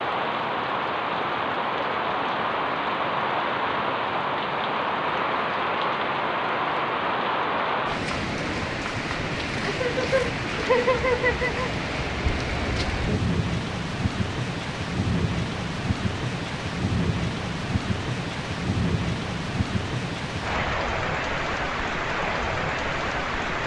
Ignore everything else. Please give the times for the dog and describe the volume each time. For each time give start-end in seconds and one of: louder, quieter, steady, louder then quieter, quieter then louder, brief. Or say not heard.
not heard.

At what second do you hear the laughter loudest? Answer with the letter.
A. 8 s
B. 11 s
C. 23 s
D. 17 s
B.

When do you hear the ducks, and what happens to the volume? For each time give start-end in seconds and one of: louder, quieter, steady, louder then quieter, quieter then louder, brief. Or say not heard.
not heard.